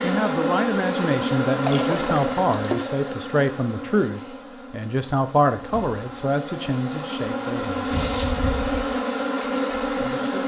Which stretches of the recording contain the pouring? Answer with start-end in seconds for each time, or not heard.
1.6-2.9.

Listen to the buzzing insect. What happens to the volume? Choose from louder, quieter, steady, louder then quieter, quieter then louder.
quieter then louder.